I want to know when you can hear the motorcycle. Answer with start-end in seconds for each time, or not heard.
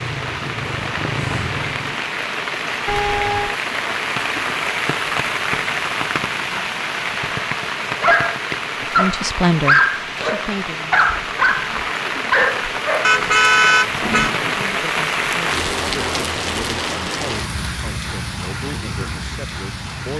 0.0-2.0.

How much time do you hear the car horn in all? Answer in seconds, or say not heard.
2 s.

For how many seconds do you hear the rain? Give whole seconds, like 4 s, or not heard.
20 s.